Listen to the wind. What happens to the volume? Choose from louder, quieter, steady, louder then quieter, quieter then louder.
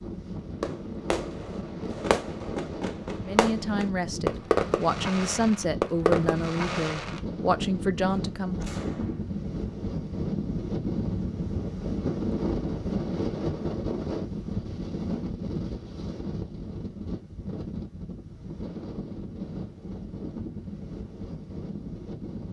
louder then quieter.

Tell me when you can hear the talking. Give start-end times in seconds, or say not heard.
3.2-8.7.